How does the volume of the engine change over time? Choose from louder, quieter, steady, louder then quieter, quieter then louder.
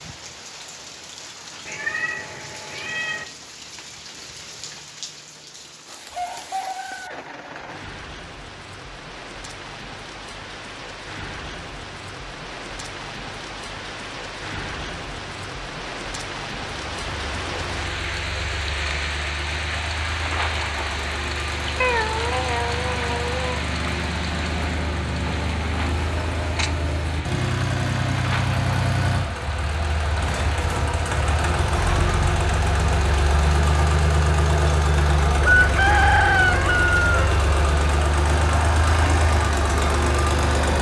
louder.